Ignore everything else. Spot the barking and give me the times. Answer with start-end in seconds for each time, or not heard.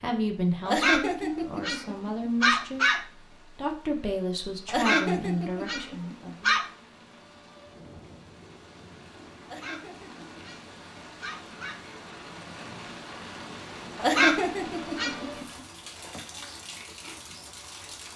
0.7-3.0, 4.7-6.7, 9.4-11.9, 13.9-15.6.